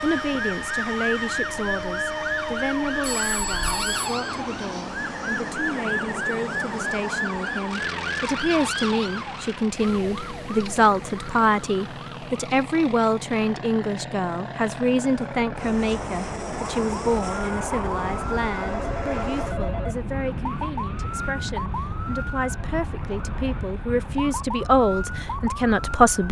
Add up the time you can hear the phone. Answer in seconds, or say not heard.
3 s.